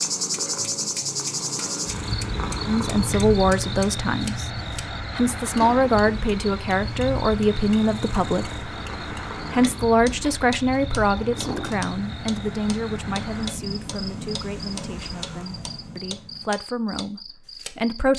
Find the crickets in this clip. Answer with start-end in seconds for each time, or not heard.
0.0-18.0.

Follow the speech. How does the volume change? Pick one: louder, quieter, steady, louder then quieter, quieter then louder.
quieter.